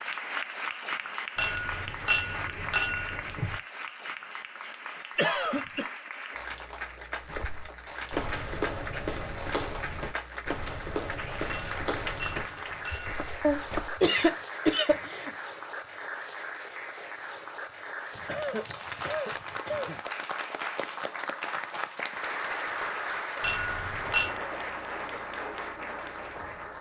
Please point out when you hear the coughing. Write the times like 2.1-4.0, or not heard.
5.2-5.9, 13.4-15.3, 18.1-20.0.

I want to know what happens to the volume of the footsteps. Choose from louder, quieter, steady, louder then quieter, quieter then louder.
quieter.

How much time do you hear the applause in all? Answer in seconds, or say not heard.
27 s.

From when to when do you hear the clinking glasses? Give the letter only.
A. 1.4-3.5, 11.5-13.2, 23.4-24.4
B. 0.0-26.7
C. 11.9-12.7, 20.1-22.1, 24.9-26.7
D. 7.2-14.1
A.